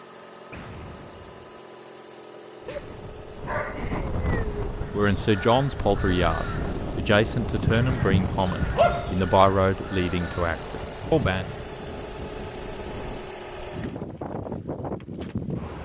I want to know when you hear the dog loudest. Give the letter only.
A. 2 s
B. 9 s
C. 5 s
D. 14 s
B.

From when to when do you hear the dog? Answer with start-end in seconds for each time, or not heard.
2.6-4.7, 8.8-9.2.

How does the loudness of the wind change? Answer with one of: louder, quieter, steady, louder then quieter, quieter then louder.
quieter then louder.